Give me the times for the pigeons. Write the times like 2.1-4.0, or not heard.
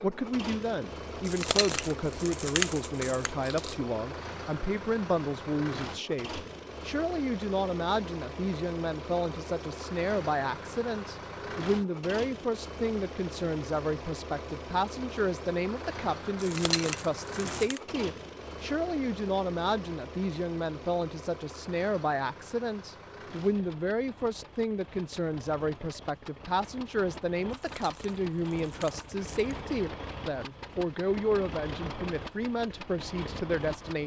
not heard.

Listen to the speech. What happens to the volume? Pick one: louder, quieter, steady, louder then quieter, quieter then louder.
steady.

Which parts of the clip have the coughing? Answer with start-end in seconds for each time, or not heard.
not heard.